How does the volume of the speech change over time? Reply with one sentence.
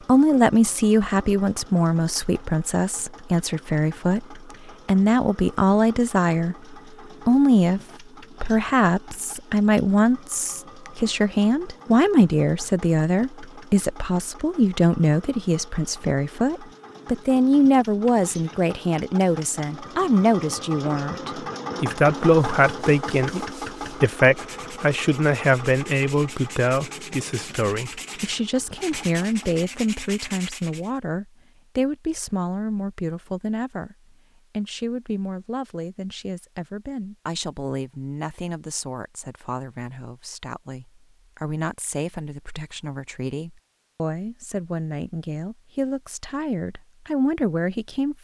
The loudness of the speech goes down.